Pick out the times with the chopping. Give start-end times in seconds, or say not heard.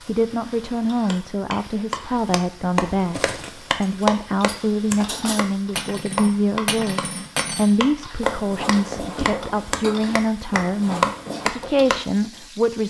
0.0-12.0.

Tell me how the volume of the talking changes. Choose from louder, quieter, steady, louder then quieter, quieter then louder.
steady.